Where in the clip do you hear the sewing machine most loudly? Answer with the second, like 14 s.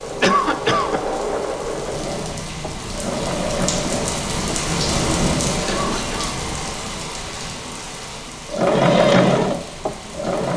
9 s.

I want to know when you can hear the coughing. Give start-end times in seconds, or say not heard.
0.2-1.0, 5.7-6.4.